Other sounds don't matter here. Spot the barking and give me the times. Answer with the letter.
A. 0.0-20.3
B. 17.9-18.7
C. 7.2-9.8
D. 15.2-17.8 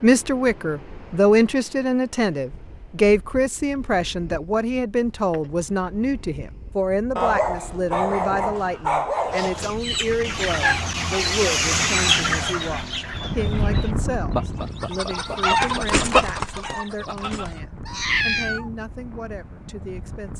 C.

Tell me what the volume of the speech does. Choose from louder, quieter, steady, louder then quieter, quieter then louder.
quieter.